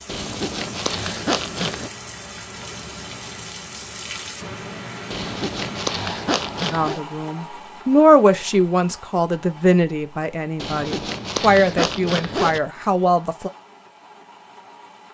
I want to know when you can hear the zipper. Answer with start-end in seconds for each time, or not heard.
0.1-1.9, 5.1-7.0, 10.6-12.6.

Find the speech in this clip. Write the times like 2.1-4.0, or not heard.
6.7-13.5.